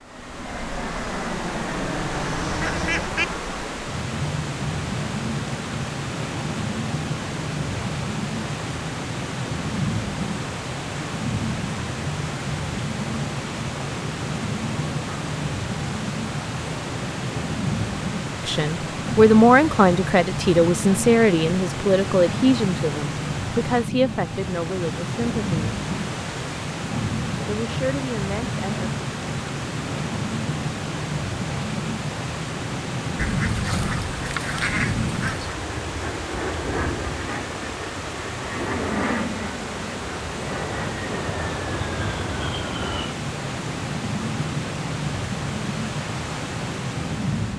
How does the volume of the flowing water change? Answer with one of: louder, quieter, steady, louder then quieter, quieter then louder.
steady.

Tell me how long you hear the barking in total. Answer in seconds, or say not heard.
not heard.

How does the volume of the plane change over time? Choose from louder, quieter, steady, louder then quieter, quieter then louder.
steady.